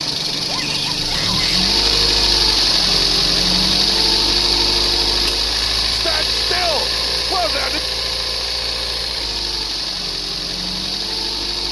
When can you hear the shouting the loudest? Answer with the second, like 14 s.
7 s.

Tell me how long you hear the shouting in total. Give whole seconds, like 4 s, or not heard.
3 s.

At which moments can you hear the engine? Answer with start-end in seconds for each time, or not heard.
0.0-11.6.